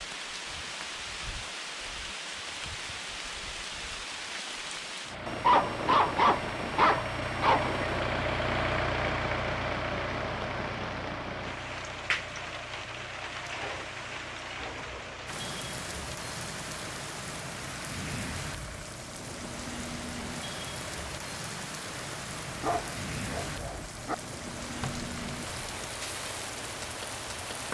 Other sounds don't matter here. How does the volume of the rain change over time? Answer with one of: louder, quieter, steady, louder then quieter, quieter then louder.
steady.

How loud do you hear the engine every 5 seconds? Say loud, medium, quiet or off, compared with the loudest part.
off, loud, medium, quiet, quiet, quiet.